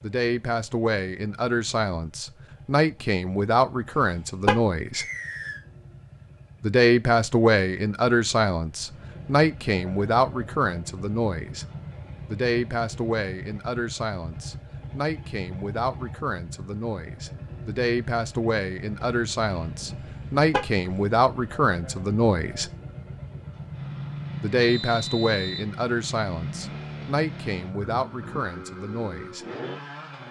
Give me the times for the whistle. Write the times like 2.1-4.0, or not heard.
4.9-5.7, 24.6-25.6.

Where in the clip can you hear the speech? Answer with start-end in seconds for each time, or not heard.
0.0-5.0, 6.6-11.7, 12.2-22.7, 24.4-29.4.